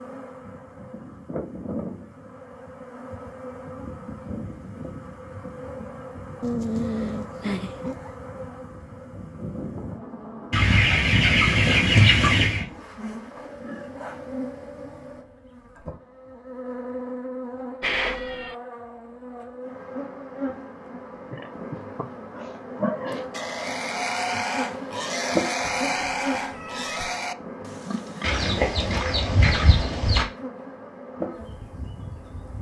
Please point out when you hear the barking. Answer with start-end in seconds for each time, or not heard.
not heard.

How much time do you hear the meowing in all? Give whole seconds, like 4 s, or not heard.
4 s.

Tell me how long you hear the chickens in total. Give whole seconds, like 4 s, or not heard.
4 s.